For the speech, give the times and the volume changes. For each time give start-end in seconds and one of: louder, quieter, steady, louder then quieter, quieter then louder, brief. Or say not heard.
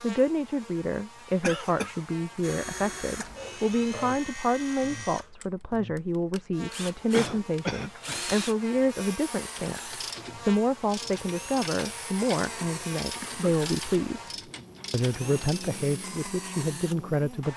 0.0-17.5 steady.